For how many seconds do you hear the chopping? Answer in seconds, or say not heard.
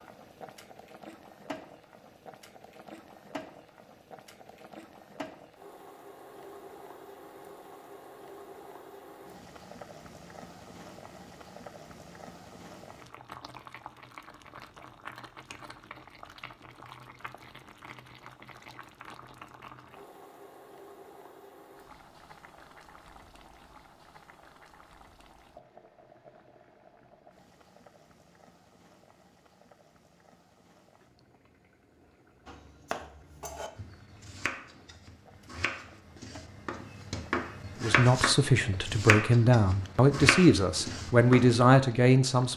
9 s.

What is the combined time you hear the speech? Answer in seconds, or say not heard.
5 s.